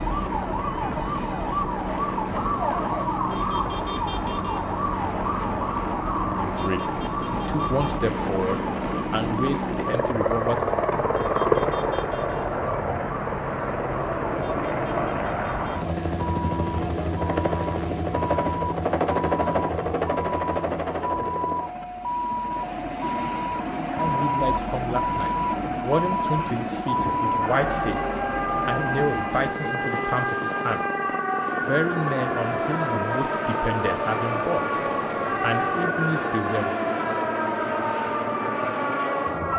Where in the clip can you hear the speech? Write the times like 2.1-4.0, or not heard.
6.4-10.7, 23.9-31.1, 31.6-36.8.